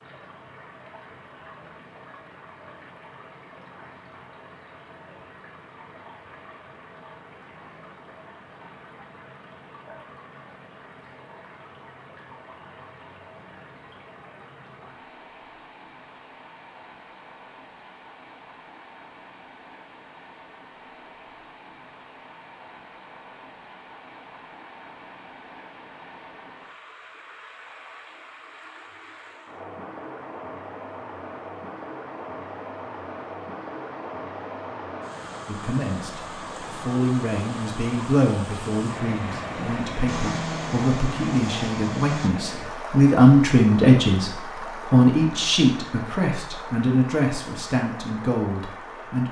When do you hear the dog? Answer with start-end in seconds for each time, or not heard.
not heard.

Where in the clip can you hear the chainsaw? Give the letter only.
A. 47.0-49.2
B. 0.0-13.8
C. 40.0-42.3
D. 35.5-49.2
C.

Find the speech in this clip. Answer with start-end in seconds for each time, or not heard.
35.5-49.2.